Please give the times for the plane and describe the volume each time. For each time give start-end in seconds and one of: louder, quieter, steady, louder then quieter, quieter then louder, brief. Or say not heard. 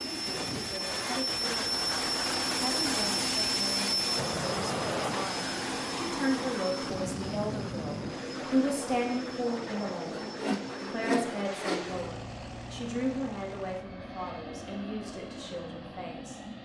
0.0-16.5 quieter.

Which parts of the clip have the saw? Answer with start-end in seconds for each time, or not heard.
10.1-12.1.